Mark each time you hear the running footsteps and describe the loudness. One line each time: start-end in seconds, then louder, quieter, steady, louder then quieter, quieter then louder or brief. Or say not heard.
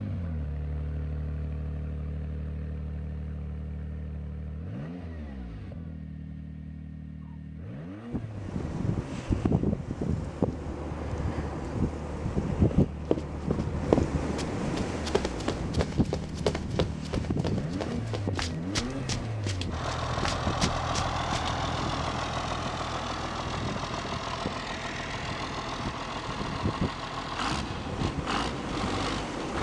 12.7-21.6 quieter.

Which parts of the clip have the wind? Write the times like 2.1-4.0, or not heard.
8.1-29.5.